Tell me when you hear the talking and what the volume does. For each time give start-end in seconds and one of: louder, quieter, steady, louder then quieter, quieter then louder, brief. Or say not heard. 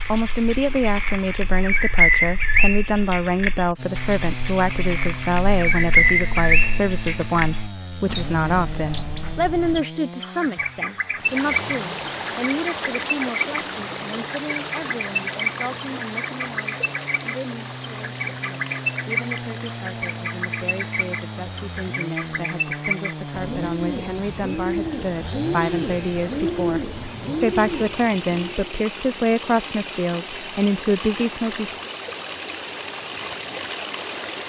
0.1-31.8 quieter then louder.